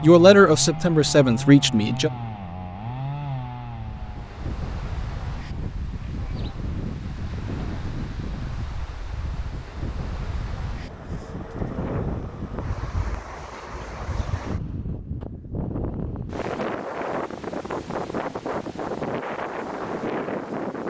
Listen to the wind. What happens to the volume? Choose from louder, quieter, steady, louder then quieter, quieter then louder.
louder.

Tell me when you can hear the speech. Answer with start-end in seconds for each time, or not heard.
0.0-2.1.